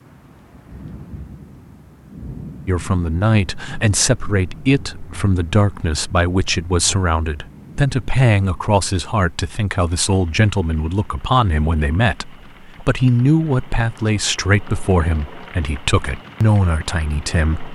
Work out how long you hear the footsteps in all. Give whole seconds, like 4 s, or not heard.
not heard.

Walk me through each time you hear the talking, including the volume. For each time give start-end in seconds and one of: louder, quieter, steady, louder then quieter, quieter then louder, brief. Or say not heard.
2.6-17.6 steady.